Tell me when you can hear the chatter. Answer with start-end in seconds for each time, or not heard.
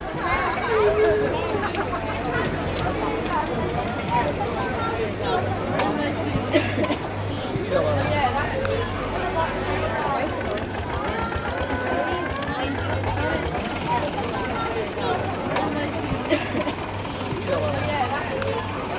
0.0-18.9.